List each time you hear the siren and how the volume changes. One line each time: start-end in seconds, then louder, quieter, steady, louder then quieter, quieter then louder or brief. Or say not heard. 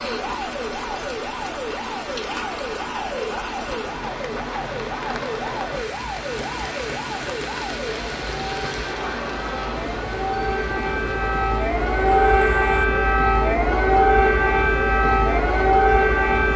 0.0-16.5 louder.